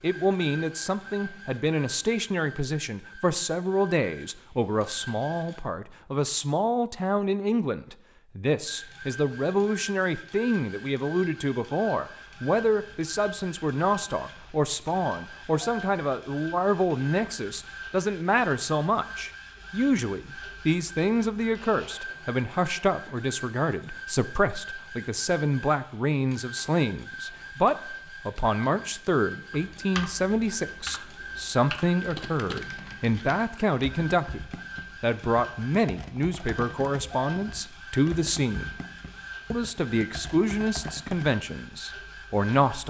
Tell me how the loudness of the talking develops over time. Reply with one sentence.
The volume of the talking stays about the same.